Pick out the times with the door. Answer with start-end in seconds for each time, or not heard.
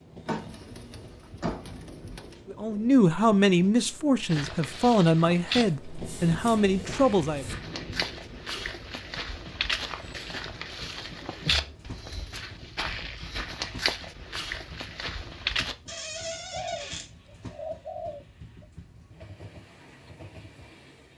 0.2-1.9, 15.8-17.1.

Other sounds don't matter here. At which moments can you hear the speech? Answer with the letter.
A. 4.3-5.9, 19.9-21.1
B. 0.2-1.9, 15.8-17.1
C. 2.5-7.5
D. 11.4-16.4
C.